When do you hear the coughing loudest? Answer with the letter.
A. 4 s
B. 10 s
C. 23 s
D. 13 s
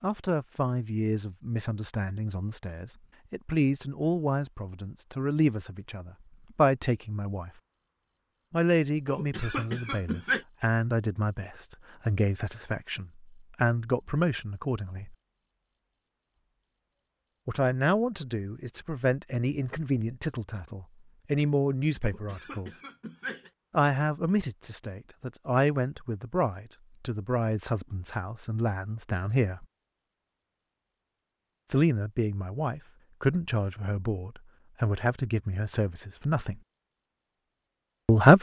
B.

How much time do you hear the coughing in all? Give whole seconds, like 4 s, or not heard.
3 s.